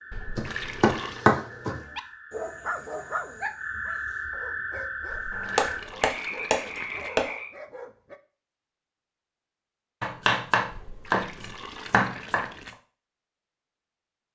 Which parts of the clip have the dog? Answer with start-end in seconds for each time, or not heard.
1.6-8.2.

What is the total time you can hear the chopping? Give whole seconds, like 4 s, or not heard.
6 s.